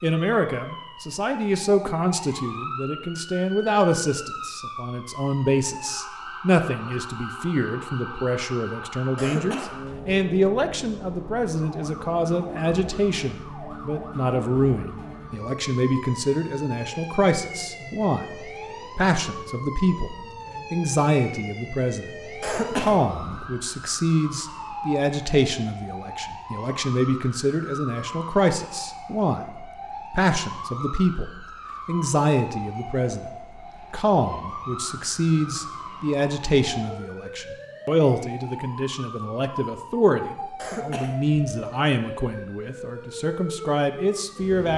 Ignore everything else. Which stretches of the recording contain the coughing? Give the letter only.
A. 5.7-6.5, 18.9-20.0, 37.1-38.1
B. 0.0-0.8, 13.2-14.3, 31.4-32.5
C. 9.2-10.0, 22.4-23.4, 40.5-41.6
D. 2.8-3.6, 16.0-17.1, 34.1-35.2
C.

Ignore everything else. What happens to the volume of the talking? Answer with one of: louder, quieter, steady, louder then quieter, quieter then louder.
steady.